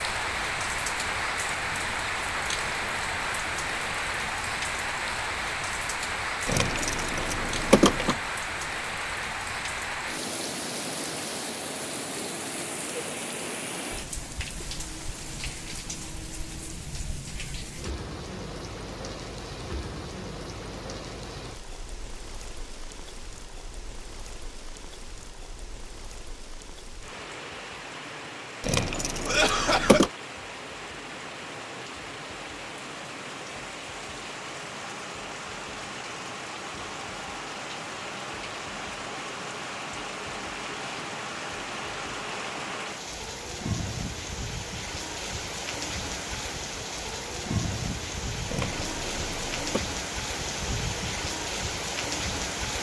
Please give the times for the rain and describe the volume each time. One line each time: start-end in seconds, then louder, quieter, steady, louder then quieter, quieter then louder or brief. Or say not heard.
0.0-52.7 quieter then louder.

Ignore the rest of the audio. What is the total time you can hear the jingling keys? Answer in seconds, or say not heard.
5 s.